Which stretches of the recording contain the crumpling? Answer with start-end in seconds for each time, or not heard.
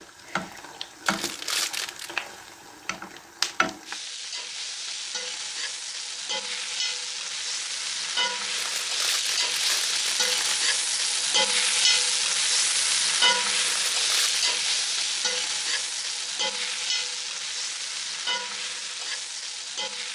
1.1-2.1, 8.6-10.6, 13.7-14.5.